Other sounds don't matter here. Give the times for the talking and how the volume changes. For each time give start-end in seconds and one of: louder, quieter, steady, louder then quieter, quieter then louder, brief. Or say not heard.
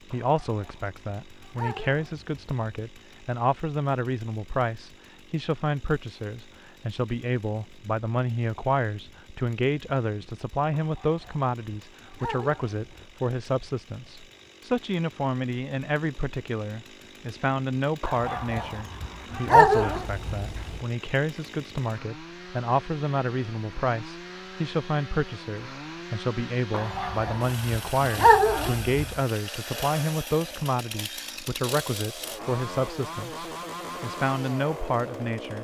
0.1-35.5 steady.